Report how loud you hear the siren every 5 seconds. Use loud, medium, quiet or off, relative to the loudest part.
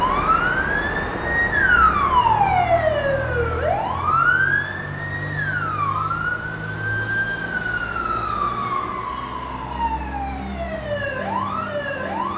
loud, medium, medium.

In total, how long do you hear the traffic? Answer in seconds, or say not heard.
12 s.